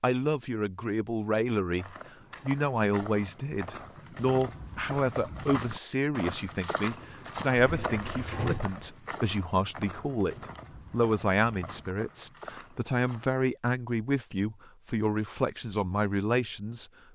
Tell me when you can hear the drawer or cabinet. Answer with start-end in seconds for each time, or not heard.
7.5-8.8.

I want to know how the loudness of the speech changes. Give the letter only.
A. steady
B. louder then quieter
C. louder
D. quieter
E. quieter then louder
A.